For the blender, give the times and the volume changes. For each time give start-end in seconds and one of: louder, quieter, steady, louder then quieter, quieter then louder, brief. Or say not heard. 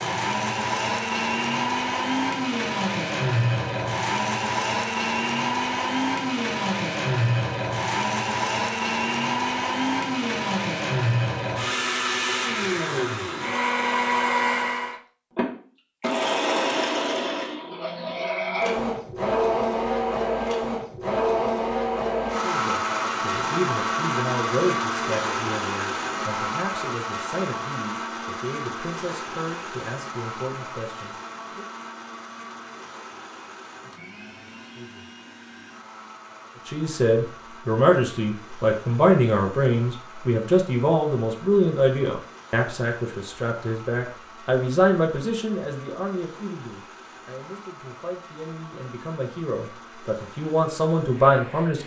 0.0-51.8 quieter.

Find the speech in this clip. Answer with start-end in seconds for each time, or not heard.
22.4-31.6, 36.6-51.8.